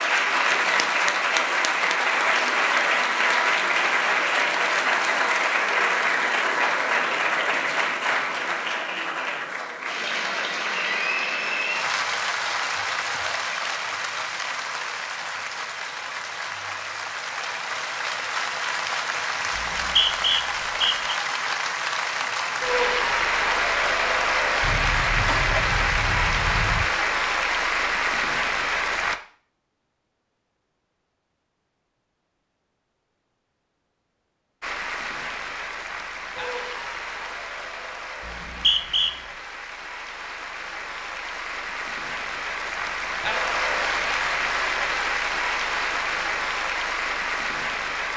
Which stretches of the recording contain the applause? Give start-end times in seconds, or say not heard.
0.0-29.2, 34.6-48.1.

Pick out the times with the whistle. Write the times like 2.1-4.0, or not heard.
19.6-21.1, 38.2-39.1.